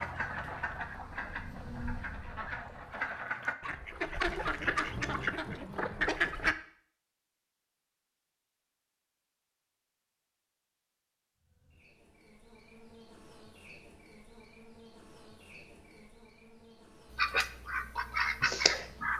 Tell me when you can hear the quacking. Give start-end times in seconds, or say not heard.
0.0-6.5, 17.1-19.1.